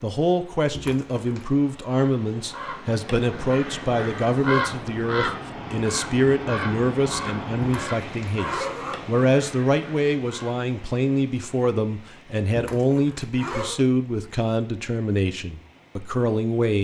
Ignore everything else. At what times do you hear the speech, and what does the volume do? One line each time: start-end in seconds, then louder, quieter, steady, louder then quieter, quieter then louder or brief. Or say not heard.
0.0-16.7 steady.